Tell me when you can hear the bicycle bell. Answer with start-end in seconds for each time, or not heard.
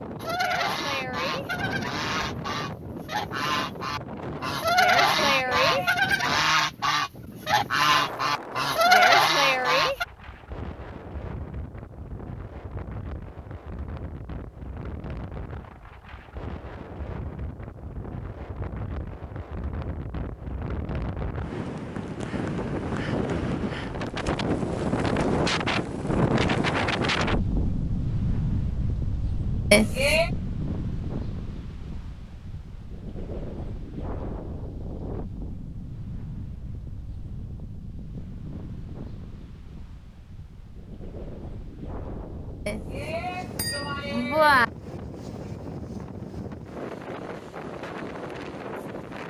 5.2-6.2, 29.7-30.3, 42.6-44.6.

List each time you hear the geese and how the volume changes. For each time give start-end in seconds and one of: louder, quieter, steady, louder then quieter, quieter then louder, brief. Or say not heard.
0.2-10.1 louder.